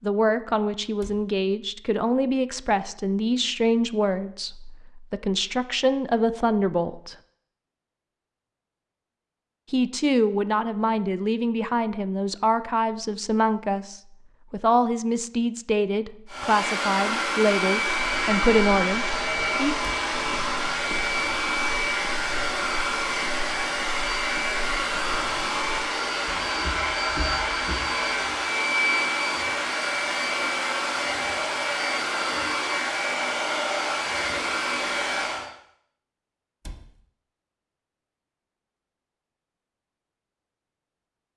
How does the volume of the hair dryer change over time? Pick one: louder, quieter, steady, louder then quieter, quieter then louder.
steady.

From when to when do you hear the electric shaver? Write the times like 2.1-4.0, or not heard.
not heard.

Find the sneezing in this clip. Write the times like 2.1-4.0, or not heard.
not heard.